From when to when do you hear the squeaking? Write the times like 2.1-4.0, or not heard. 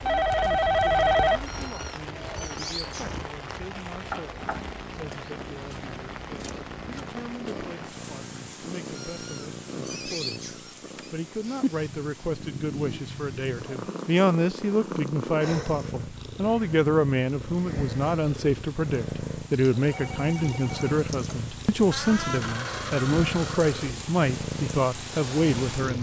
1.4-3.1, 8.9-10.8, 21.9-23.9.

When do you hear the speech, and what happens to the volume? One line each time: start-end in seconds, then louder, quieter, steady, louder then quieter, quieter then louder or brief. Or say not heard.
0.0-25.9 louder.